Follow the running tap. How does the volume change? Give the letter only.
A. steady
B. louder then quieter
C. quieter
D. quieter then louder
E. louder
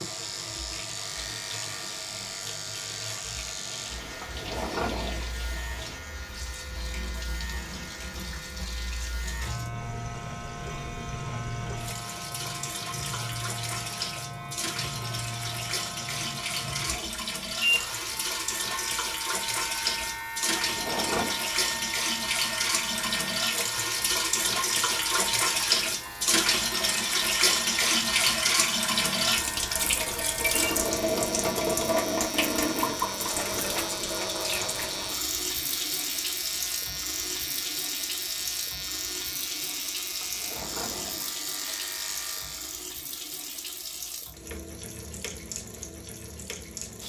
B.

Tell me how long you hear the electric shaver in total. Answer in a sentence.
The electric shaver can be heard for 43 seconds in total.